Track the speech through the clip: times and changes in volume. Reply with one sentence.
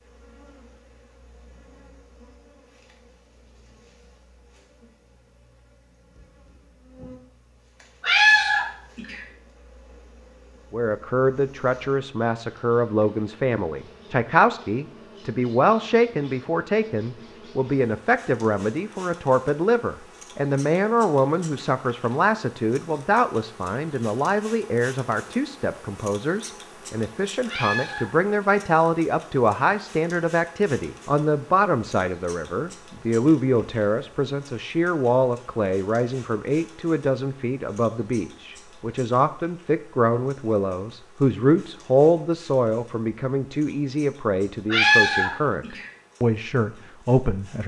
The speech can be heard from 10.7 to 47.6 s, at a steady volume.